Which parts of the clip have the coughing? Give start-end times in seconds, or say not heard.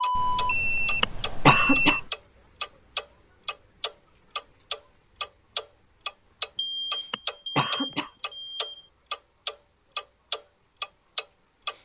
1.0-2.0, 7.1-8.1.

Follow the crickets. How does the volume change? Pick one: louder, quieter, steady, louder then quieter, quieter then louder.
quieter.